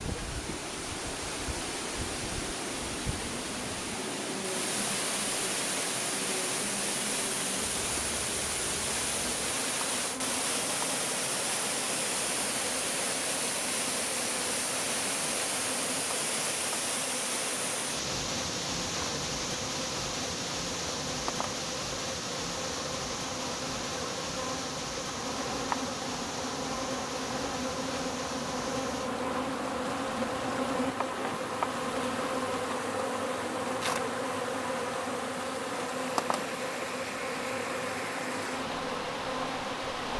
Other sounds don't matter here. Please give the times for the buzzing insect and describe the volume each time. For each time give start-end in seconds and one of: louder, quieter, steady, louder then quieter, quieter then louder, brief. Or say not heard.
0.0-40.1 louder.